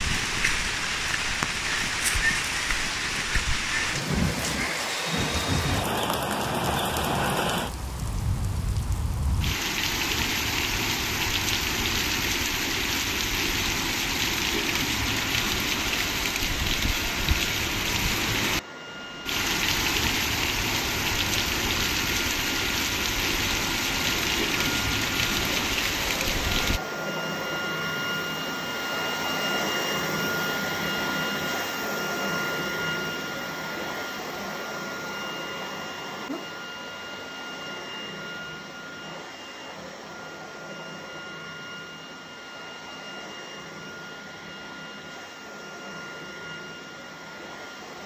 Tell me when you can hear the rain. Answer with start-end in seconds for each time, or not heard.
0.0-26.8.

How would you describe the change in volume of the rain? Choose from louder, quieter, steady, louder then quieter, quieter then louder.
steady.